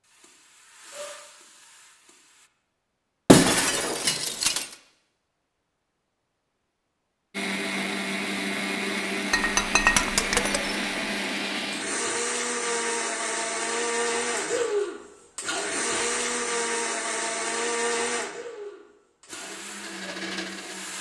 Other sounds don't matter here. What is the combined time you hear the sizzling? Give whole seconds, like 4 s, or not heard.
4 s.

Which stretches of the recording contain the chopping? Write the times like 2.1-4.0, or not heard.
not heard.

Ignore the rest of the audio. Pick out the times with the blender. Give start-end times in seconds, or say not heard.
7.3-20.9.